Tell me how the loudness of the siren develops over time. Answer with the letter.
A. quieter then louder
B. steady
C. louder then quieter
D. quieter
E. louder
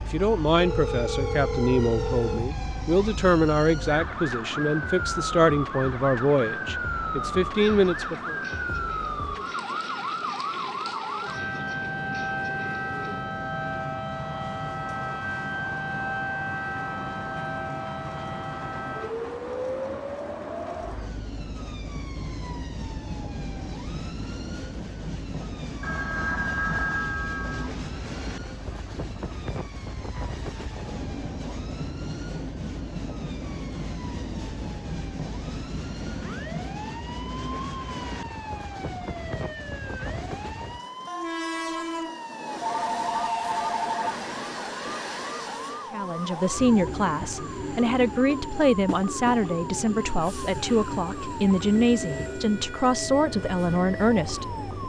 A.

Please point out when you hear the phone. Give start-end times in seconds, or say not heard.
0.6-2.5, 25.8-27.7, 42.6-44.1.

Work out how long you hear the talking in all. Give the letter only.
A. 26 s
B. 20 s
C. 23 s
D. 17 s
D.